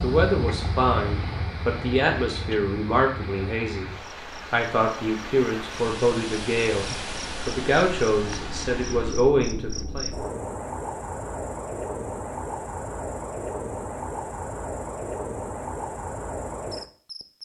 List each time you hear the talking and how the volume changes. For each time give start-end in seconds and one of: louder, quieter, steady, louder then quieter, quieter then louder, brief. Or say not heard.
0.0-10.1 steady.